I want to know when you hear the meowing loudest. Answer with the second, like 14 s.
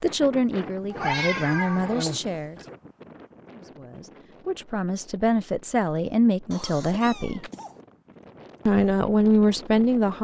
1 s.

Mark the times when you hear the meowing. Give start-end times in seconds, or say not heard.
0.9-2.7, 7.0-7.5.